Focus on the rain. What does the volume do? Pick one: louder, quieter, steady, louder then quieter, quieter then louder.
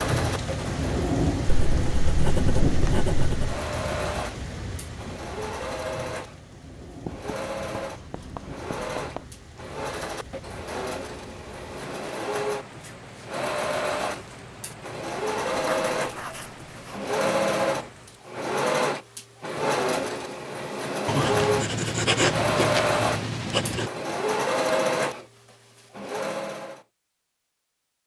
quieter.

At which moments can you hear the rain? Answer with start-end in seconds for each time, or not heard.
0.0-18.4.